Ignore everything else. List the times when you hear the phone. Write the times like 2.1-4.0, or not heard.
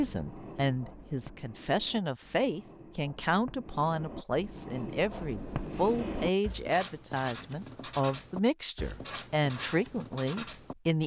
not heard.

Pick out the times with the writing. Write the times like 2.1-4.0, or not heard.
0.0-10.8.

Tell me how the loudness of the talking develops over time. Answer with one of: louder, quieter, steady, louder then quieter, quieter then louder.
steady.